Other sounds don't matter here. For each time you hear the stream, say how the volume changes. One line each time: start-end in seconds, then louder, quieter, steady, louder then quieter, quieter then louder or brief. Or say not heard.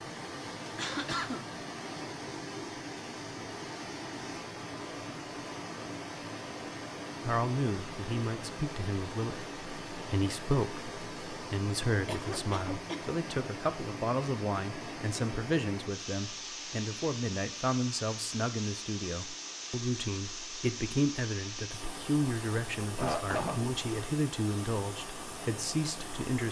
0.0-26.4 steady.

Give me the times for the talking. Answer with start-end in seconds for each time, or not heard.
7.2-26.4.